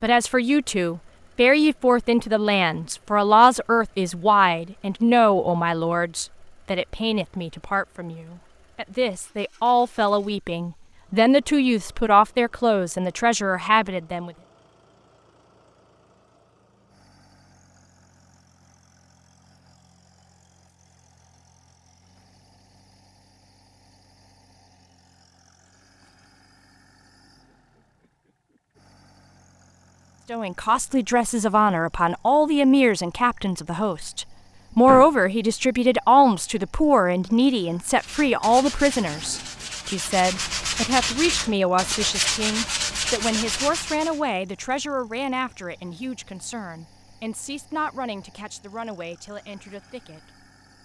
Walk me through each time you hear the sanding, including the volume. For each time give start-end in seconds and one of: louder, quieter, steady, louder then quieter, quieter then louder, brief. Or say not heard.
38.0-44.2 louder.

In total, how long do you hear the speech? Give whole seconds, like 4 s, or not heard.
34 s.